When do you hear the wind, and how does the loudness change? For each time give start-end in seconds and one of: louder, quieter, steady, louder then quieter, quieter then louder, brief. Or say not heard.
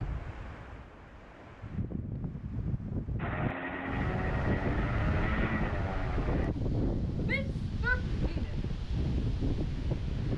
0.0-10.3 louder.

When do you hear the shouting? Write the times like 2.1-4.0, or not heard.
7.2-8.6.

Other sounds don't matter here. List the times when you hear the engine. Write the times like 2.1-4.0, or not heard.
3.1-6.5.